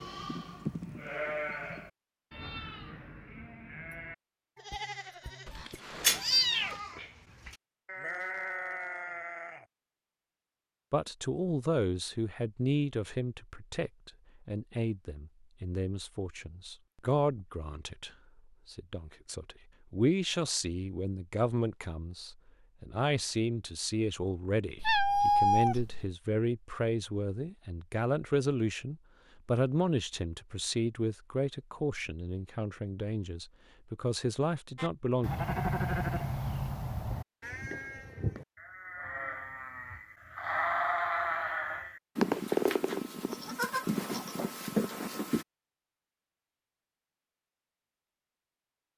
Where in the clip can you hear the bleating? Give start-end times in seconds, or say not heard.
0.0-9.7, 34.8-45.5.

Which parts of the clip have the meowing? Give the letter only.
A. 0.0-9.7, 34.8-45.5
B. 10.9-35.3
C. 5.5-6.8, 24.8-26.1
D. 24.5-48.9
C.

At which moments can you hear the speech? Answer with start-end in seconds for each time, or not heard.
10.9-35.3.